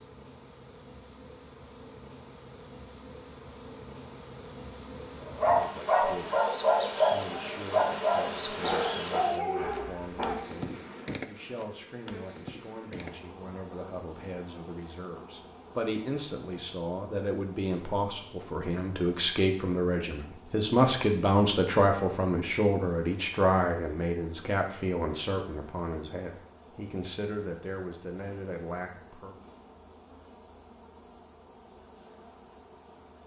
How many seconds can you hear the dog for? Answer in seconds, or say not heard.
5 s.